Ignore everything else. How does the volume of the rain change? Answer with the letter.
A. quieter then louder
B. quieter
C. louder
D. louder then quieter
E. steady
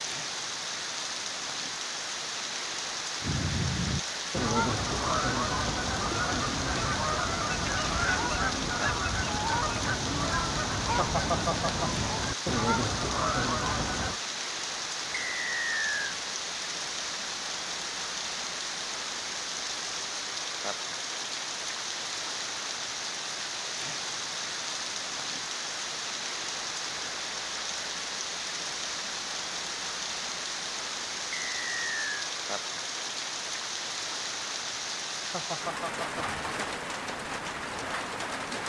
E.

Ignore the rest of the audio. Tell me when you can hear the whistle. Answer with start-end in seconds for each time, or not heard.
15.2-16.1, 31.3-32.0.